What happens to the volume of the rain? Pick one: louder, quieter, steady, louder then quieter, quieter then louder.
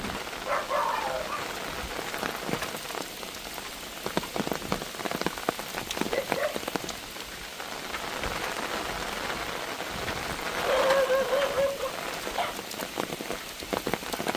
steady.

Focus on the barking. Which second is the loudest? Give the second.
11 s.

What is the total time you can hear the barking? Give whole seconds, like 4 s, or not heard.
4 s.